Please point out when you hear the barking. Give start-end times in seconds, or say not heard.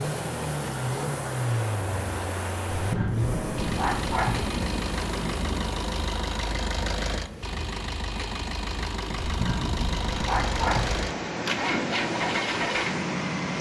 2.7-4.5, 9.2-11.0.